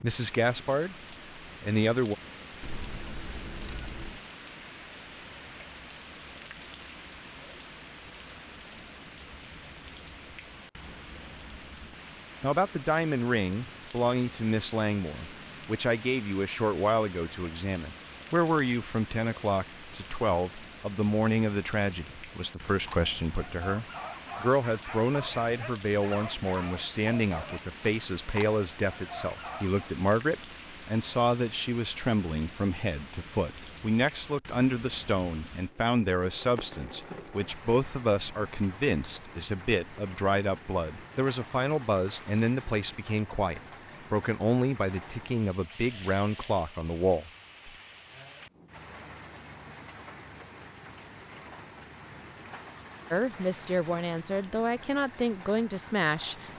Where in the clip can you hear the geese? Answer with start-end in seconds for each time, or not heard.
2.6-4.2.